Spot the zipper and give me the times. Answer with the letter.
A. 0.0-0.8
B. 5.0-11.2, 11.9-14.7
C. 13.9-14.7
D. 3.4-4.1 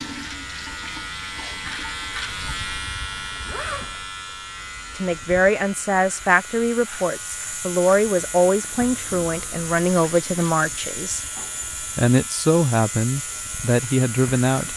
D.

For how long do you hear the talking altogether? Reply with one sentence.
The talking can be heard for 9 seconds in total.